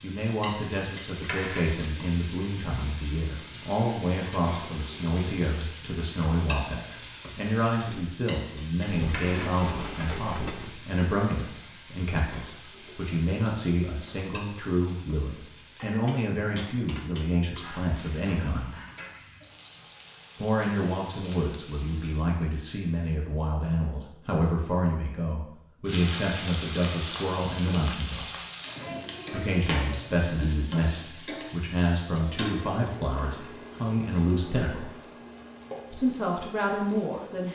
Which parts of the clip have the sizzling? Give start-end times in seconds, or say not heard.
0.0-22.2, 25.9-37.5.